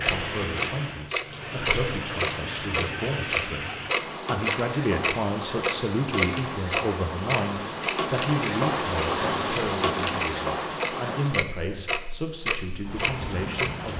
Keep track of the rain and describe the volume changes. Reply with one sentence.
The volume of the rain goes up, then down.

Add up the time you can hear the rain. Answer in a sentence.
The rain can be heard for 14 seconds in total.